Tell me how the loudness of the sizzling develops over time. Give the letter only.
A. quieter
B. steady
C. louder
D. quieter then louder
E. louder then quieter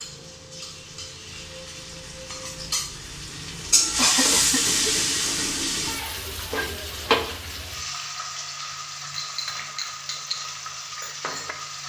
E.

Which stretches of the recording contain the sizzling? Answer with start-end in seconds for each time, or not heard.
0.0-11.8.